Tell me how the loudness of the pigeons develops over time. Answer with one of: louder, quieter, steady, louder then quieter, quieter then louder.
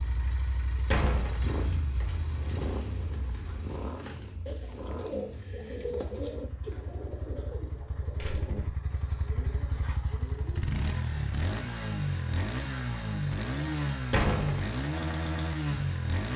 louder then quieter.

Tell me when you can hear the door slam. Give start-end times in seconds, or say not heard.
0.9-1.4, 8.2-8.6, 14.1-14.6.